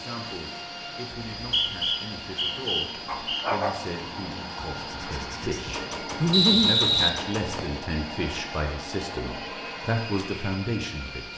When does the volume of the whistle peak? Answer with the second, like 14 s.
7 s.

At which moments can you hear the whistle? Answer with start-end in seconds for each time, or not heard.
1.4-3.5, 6.3-7.8.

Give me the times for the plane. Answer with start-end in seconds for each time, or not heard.
0.0-11.3.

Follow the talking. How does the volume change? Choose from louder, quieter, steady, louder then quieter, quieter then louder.
louder.